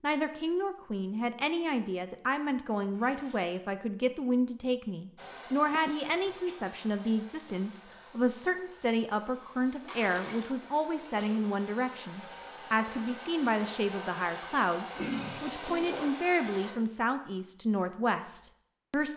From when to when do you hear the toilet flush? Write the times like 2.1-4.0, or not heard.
2.9-3.5, 9.8-10.6, 14.9-16.1.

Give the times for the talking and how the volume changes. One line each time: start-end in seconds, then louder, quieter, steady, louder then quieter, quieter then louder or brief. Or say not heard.
0.0-19.1 steady.